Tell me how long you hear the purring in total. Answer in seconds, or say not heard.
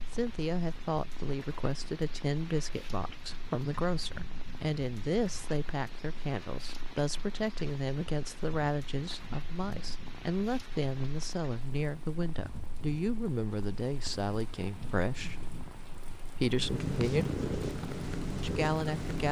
19 s.